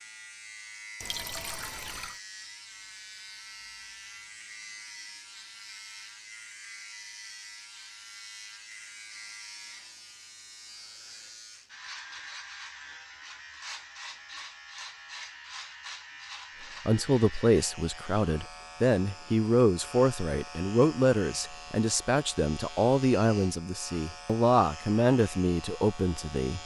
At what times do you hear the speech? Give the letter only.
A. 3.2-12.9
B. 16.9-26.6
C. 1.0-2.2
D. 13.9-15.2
B.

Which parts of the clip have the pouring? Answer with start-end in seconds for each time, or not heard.
1.0-2.2.